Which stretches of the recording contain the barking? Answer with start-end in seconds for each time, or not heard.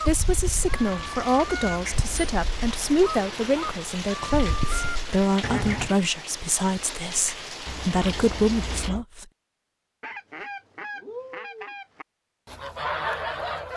not heard.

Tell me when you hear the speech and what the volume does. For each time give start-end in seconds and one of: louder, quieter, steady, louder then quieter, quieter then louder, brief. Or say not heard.
0.1-9.2 steady.